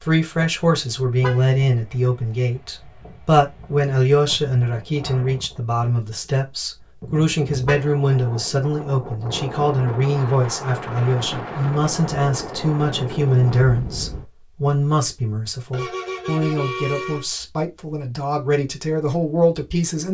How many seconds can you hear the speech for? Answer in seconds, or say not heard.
20 s.